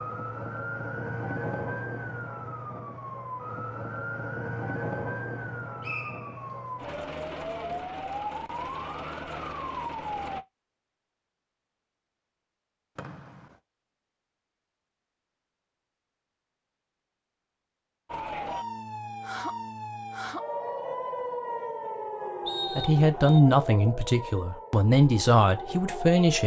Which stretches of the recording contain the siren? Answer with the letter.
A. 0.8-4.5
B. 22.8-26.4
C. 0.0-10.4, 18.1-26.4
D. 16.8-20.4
C.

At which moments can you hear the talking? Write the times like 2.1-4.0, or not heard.
22.8-26.4.